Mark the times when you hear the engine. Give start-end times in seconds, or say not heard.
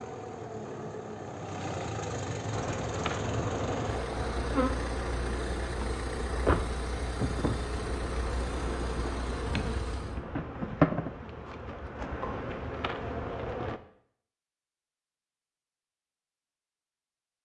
0.0-10.2.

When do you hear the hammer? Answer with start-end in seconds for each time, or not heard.
not heard.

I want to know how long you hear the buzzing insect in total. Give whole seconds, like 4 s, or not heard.
11 s.